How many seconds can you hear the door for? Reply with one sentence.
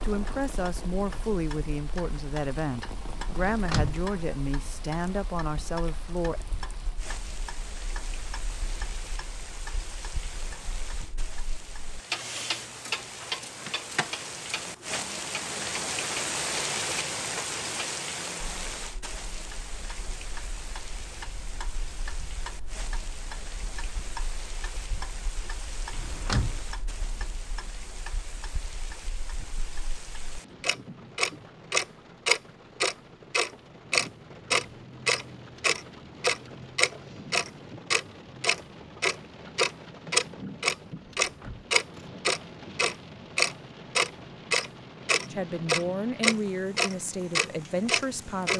You can hear the door for 2 seconds altogether.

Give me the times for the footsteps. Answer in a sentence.
You can't hear the footsteps here.